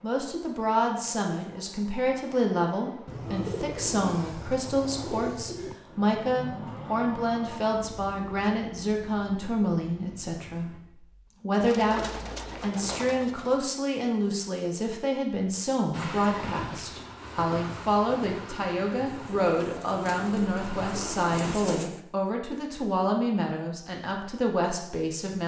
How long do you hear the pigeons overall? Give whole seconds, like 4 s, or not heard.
8 s.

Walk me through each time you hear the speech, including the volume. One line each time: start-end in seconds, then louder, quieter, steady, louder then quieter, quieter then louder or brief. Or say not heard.
0.0-25.4 steady.